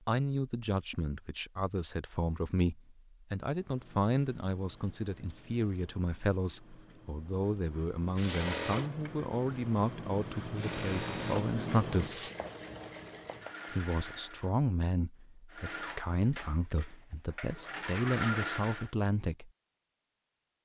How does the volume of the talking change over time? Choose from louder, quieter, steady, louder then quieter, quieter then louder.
steady.